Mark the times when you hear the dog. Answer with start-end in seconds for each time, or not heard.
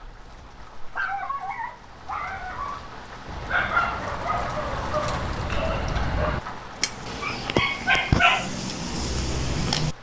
0.0-9.9.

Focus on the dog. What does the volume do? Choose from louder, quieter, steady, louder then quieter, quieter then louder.
louder.